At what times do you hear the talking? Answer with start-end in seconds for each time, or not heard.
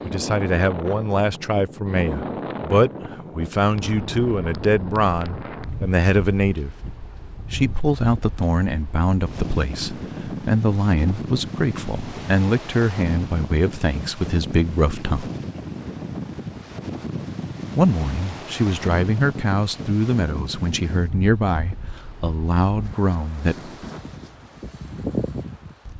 0.0-6.8, 7.5-15.3, 17.8-23.9.